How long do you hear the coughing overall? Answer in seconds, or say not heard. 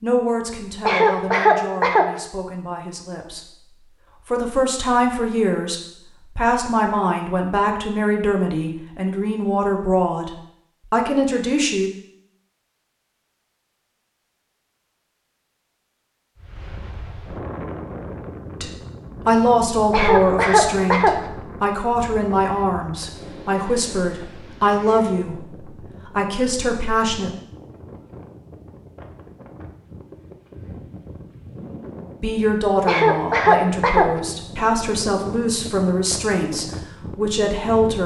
4 s.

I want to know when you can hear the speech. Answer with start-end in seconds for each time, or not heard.
0.0-11.9, 18.6-27.4, 32.2-38.0.